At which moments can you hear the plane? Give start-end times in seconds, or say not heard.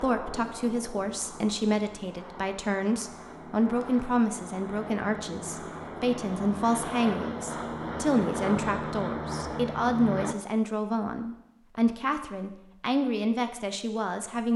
0.0-10.3.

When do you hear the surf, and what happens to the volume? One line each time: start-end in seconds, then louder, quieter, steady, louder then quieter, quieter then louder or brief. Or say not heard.
not heard.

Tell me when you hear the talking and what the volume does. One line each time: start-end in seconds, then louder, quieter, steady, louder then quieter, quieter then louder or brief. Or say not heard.
0.0-14.5 steady.